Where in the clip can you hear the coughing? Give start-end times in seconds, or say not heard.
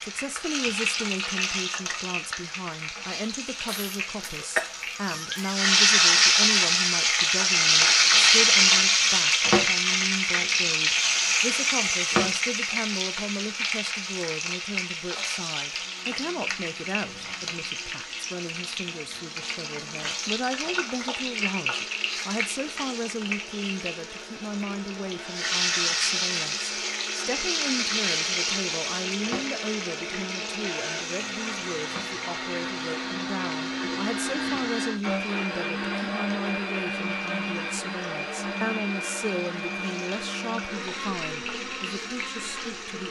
3.6-5.6.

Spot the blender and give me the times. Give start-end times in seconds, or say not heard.
15.8-43.0.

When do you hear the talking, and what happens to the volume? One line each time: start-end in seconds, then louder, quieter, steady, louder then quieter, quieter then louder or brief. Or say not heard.
0.0-43.0 steady.